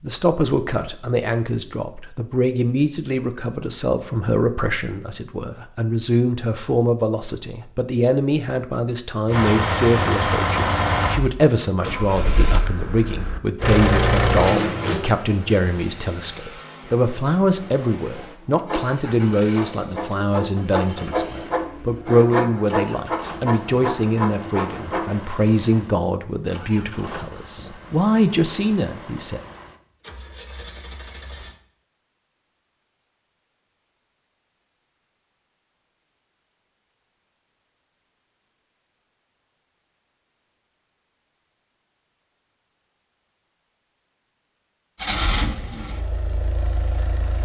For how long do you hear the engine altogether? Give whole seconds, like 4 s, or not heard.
25 s.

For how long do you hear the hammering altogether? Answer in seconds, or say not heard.
not heard.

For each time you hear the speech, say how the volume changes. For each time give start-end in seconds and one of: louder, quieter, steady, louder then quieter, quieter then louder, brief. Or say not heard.
0.0-29.4 steady.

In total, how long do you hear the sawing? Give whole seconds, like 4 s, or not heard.
7 s.